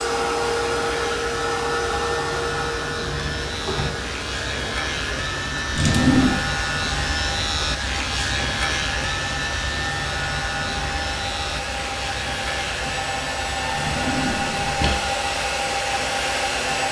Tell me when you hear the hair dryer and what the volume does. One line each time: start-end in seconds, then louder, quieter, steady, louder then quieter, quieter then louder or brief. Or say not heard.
0.0-16.8 quieter then louder.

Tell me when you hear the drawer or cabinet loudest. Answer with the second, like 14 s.
6 s.